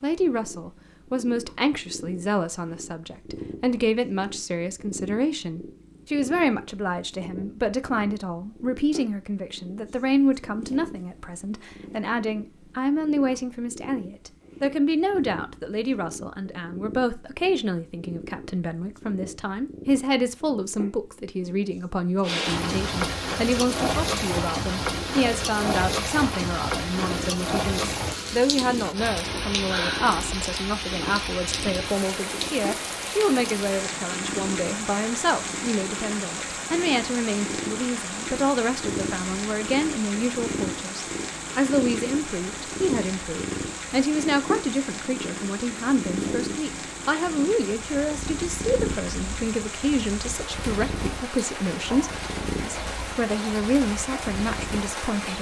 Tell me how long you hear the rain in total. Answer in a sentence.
You can hear the rain for 33 seconds altogether.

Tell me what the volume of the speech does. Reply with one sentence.
The volume of the speech stays about the same.